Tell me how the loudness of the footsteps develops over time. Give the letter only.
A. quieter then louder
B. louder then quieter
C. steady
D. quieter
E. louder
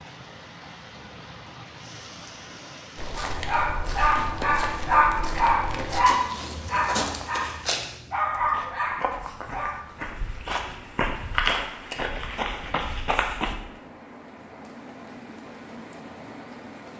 E.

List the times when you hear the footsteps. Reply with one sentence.
The footsteps can be heard from 3.0 to 13.6 s.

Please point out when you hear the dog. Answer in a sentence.
The dog can be heard from 3.1 to 9.8 s.